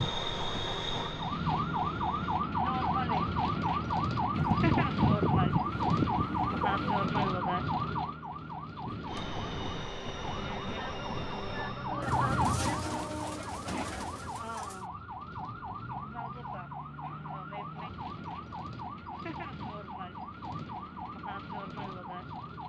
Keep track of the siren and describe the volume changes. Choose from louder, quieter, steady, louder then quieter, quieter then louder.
quieter.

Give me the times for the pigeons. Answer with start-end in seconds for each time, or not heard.
4.3-7.1, 12.0-14.8.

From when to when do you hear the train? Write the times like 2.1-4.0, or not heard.
0.0-2.5, 9.1-13.9.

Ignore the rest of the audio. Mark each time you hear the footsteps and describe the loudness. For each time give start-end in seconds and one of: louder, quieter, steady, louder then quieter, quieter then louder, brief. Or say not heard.
not heard.